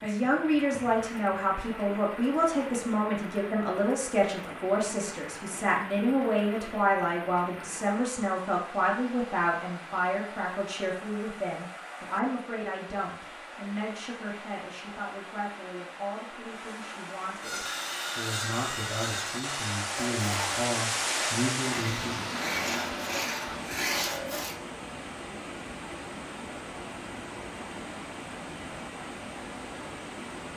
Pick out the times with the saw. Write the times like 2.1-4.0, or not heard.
17.4-24.6.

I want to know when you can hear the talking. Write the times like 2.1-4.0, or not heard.
0.0-22.4.